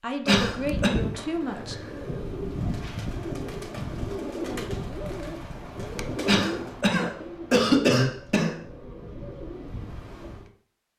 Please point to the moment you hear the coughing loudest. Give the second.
8 s.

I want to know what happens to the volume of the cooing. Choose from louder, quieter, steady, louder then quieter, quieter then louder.
quieter.